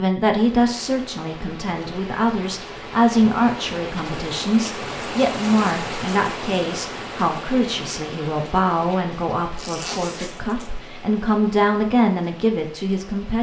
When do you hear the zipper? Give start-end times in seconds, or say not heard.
9.6-10.8.